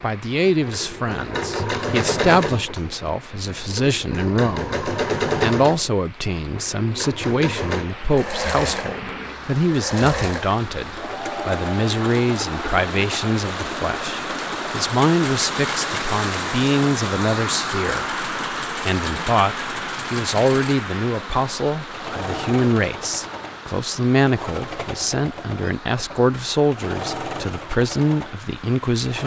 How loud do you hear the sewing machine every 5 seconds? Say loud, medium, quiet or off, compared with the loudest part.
loud, loud, medium, medium, medium, medium.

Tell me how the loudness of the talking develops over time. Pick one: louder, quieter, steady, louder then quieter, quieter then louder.
steady.